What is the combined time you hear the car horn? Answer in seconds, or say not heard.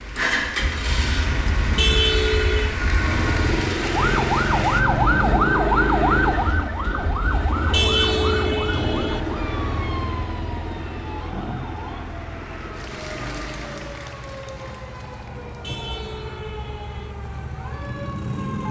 4 s.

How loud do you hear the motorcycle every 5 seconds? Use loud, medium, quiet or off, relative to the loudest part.
loud, loud, medium, medium.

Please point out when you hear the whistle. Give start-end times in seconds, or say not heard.
not heard.